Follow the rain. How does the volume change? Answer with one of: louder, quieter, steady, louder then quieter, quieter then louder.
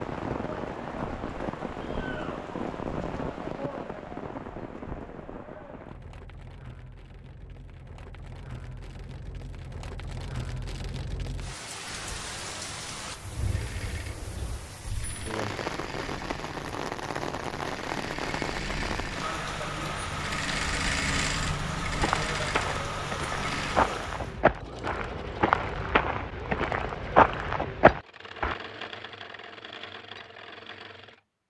quieter then louder.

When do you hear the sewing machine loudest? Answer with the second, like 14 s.
21 s.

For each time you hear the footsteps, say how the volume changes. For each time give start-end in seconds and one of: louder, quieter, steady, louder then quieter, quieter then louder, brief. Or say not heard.
21.9-28.6 louder.